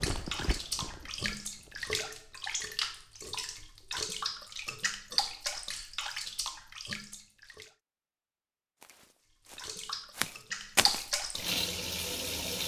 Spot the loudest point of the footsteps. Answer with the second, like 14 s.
11 s.